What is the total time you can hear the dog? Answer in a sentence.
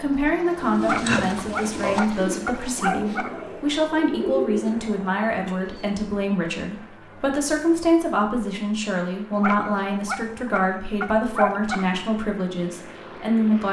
You can hear the dog for 5 seconds altogether.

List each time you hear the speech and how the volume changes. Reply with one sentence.
The speech can be heard from 0.0 to 13.6 s, at a steady volume.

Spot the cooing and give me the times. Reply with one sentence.
You can hear the cooing from 0.6 to 6.0 s.